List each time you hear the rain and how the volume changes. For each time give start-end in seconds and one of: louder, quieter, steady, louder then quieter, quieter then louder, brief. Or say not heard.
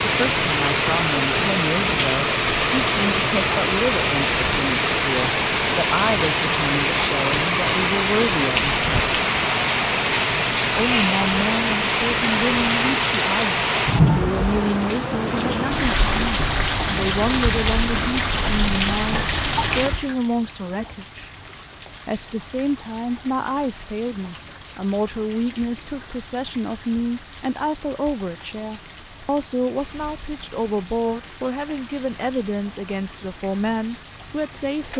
0.0-34.9 quieter.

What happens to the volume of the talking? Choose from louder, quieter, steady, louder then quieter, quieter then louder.
steady.